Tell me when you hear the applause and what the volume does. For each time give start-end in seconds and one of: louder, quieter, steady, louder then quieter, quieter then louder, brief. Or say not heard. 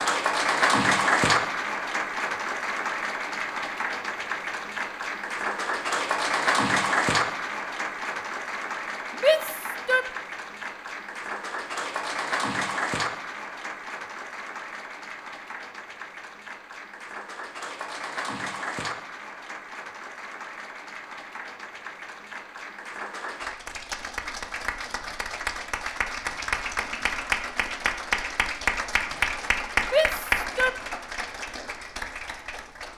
0.0-32.9 quieter then louder.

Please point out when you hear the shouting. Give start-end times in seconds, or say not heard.
9.2-10.1, 29.9-30.7.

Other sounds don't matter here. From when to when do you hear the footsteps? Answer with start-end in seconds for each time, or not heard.
not heard.